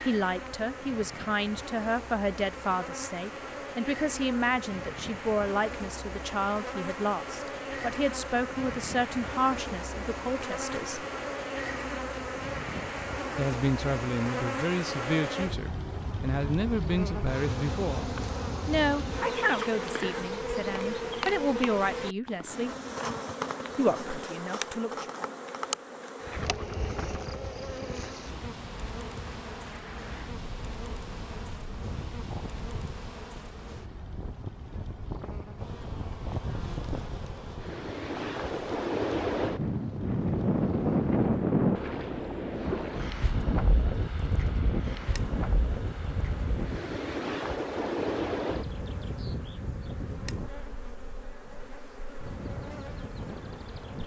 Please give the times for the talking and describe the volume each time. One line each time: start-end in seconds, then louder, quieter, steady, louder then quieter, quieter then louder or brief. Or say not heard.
0.0-11.1 steady
13.3-22.8 steady
23.8-25.1 brief.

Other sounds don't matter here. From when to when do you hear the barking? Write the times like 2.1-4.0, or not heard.
not heard.